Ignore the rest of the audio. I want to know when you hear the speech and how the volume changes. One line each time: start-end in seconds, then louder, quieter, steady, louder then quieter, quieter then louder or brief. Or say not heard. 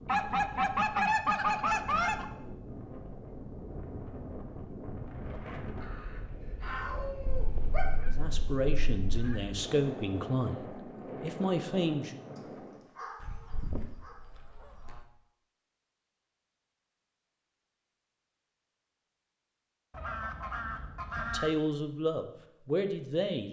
8.1-12.2 quieter then louder
21.1-23.4 brief.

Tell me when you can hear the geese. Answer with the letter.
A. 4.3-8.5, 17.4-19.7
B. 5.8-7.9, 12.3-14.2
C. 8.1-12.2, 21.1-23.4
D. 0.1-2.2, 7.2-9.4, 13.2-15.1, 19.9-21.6
D.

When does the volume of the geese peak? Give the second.
1 s.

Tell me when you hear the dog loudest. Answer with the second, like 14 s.
7 s.